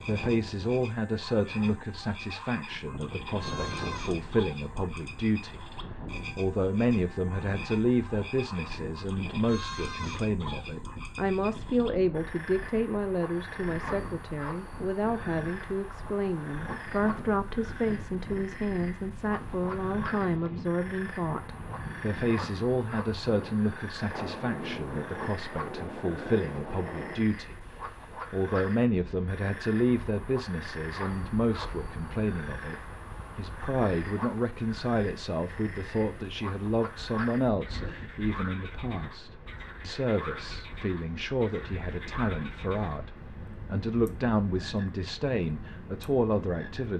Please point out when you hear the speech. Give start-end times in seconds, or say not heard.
0.0-46.9.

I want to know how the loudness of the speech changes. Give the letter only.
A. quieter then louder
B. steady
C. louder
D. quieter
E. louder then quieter
B.